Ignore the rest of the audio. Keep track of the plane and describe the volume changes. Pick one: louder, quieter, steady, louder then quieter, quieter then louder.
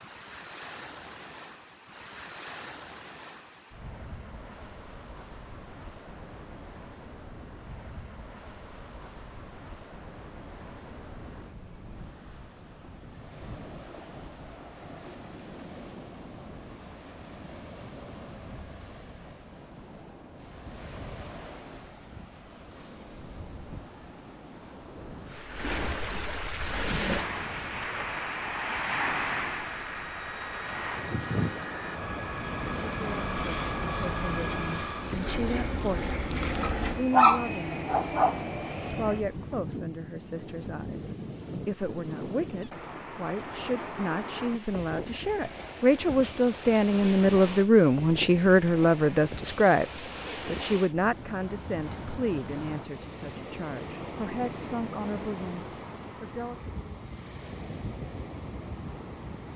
louder.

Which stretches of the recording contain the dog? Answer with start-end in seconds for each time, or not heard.
36.6-38.5.